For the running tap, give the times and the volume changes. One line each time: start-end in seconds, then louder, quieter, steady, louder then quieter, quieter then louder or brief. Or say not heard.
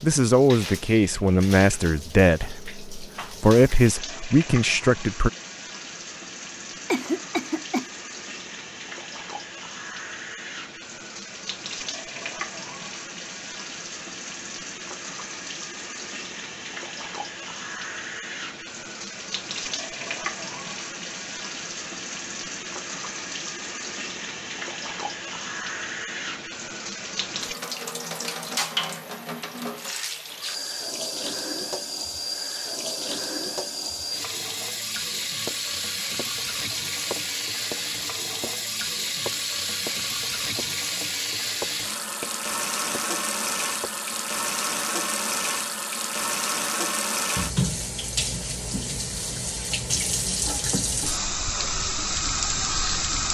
0.0-53.2 louder.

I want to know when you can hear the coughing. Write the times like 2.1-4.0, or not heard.
6.9-7.8.